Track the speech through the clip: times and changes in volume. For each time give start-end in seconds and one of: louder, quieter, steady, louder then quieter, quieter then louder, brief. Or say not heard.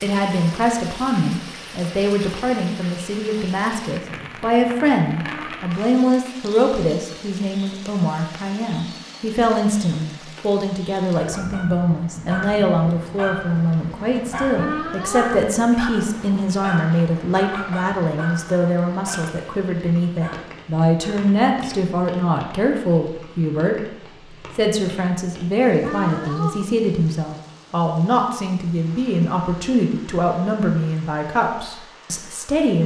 0.0-32.8 steady.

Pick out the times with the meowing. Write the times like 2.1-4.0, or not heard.
5.2-5.9, 14.6-15.6, 25.8-26.6.